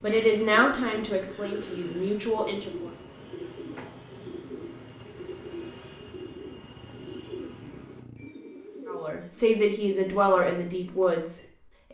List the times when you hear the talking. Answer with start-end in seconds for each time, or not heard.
0.0-2.9, 8.8-11.8.